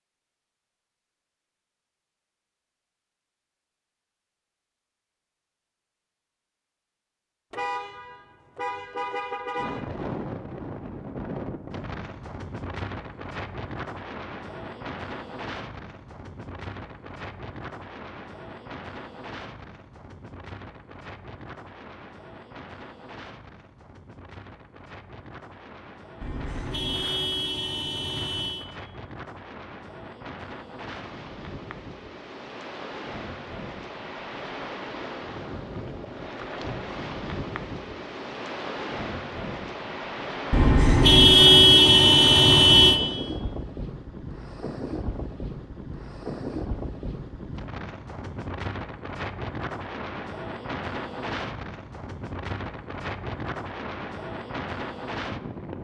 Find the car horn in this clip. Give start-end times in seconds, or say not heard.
7.5-9.8, 26.2-28.6, 40.5-43.0.